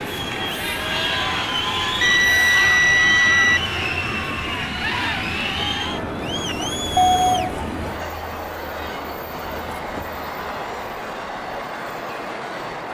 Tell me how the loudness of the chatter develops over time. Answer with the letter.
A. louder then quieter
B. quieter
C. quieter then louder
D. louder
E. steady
B.